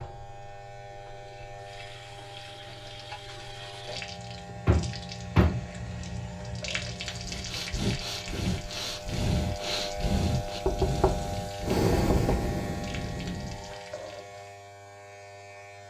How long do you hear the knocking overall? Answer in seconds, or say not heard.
3 s.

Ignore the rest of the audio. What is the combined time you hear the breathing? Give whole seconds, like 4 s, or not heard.
7 s.